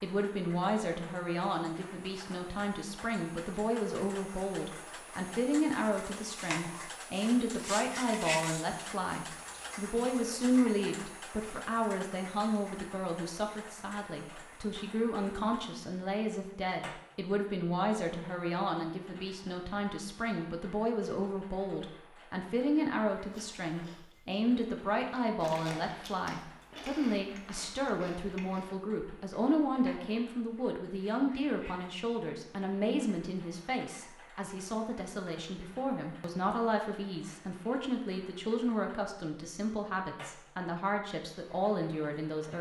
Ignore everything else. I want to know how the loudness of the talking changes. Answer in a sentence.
The loudness of the talking stays about the same.